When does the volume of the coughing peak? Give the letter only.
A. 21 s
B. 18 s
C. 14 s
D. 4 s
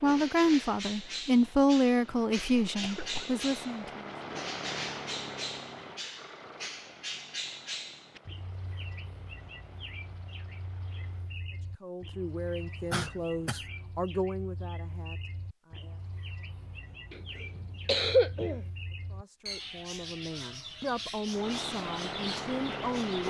B.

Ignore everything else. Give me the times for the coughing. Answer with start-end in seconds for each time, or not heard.
2.8-3.4, 12.9-13.7, 17.1-18.7.